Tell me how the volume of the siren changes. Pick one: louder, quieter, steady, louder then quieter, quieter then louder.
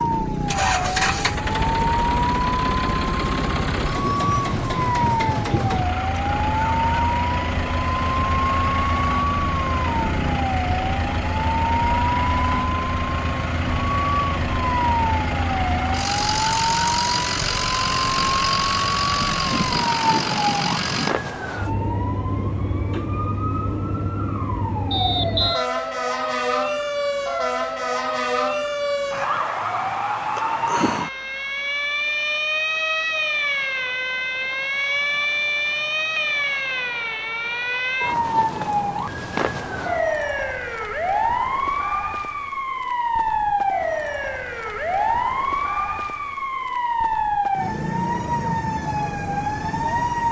steady.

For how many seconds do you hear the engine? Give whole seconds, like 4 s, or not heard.
21 s.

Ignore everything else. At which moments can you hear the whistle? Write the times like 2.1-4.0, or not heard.
24.9-25.6.